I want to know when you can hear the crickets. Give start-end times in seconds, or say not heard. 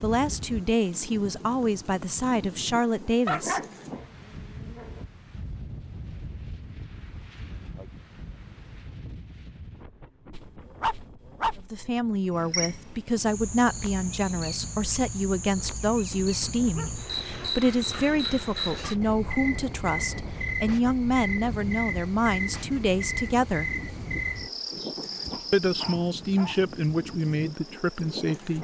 12.3-28.2.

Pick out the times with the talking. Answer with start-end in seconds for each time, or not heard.
0.0-3.6, 11.7-23.7, 25.5-28.5.